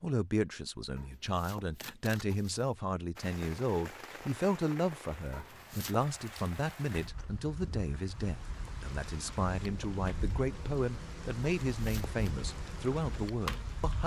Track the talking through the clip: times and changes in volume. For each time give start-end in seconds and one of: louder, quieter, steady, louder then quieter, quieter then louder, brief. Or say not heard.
0.0-14.0 steady.